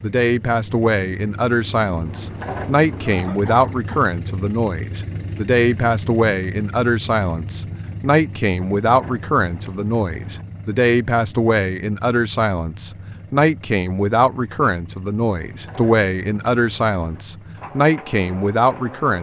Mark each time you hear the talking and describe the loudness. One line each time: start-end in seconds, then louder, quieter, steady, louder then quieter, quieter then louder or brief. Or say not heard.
0.0-19.1 steady.